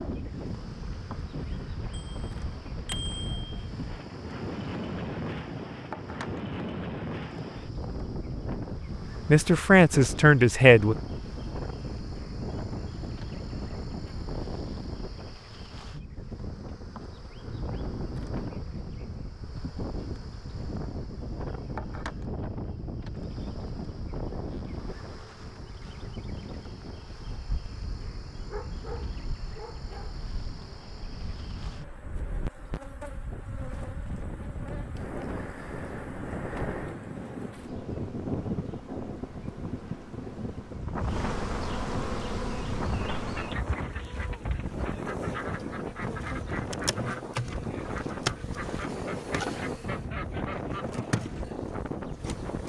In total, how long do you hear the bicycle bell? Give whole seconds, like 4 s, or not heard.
2 s.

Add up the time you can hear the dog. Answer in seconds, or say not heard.
2 s.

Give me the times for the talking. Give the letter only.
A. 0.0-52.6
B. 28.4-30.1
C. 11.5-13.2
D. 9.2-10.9
D.